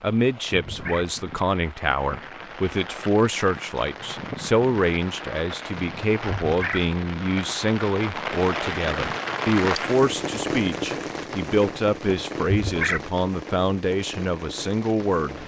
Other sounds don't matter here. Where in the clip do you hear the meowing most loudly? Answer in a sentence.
The volume of the meowing peaks at 13 seconds.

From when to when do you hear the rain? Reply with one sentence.
You can hear the rain from 0.0 to 15.4 s.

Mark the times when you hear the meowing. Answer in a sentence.
The meowing can be heard from 0.7 to 1.1 s, from 6.2 to 6.8 s and from 12.4 to 13.0 s.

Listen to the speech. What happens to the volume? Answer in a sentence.
The loudness of the speech stays about the same.